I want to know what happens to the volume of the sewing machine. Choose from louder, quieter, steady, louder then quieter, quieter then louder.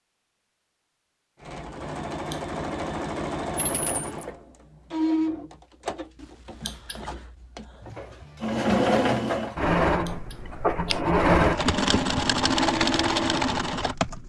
louder.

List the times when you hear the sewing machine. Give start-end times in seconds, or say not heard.
1.4-14.2.